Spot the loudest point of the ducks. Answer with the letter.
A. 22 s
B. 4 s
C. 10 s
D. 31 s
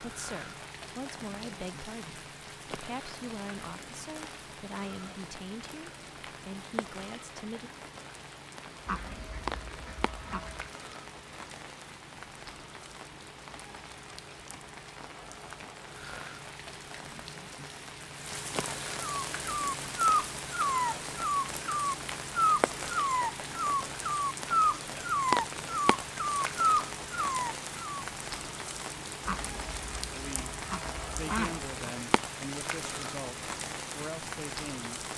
D.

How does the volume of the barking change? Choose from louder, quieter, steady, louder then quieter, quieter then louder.
steady.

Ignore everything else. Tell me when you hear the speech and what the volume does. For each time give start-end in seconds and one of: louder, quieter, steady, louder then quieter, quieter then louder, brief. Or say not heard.
0.0-7.7 steady
30.1-35.0 steady.